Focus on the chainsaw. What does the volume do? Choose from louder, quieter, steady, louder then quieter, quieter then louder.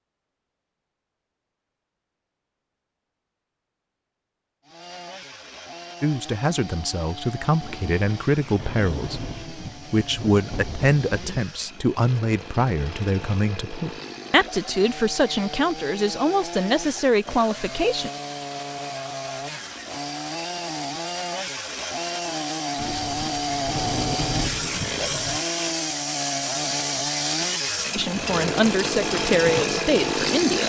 louder.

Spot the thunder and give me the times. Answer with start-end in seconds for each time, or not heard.
7.6-11.5, 22.8-25.4.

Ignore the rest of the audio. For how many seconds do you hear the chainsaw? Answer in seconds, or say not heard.
26 s.